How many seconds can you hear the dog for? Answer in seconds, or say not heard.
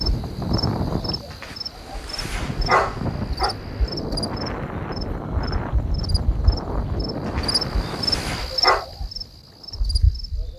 4 s.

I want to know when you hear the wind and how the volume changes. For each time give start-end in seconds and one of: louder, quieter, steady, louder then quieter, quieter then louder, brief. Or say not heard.
0.0-10.5 quieter.